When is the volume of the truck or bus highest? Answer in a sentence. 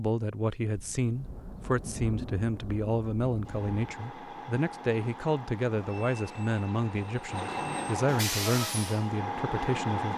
The volume of the truck or bus peaks at 8 seconds.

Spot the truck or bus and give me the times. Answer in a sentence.
You can hear the truck or bus from 3.5 to 10.1 s.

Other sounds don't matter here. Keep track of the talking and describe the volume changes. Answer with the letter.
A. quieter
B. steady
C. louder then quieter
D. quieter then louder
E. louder
B.